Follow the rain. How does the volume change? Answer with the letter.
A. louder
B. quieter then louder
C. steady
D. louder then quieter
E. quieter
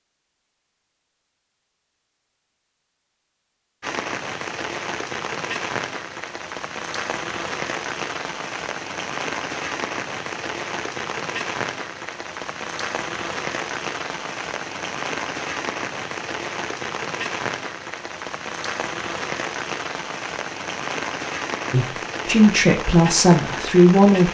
C.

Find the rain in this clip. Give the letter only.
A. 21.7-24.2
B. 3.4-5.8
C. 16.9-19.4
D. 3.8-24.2
D.